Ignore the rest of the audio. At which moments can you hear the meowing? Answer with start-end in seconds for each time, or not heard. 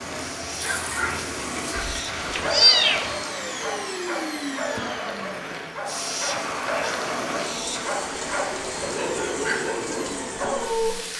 1.8-3.1.